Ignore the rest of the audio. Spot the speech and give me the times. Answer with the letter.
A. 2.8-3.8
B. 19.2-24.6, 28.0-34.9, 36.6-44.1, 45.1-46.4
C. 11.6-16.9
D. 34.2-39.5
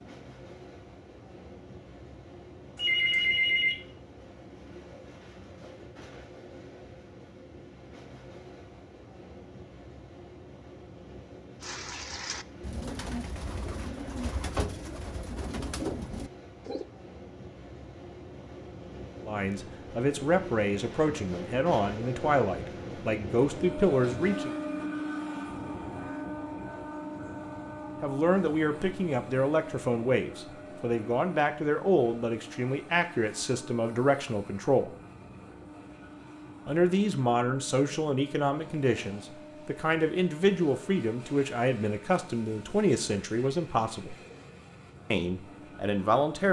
B.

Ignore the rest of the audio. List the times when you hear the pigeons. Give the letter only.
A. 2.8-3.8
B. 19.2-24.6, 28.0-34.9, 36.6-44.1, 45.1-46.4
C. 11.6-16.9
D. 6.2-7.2
C.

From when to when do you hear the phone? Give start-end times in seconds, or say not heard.
2.8-3.8.